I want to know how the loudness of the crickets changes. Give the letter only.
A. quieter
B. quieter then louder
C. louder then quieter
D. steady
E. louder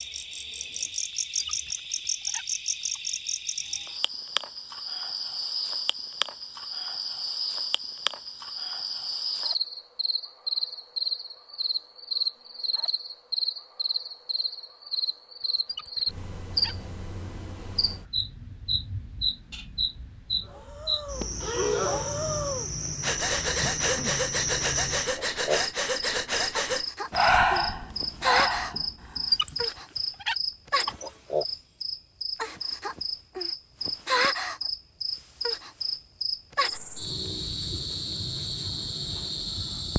D.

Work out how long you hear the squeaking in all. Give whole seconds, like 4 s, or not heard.
5 s.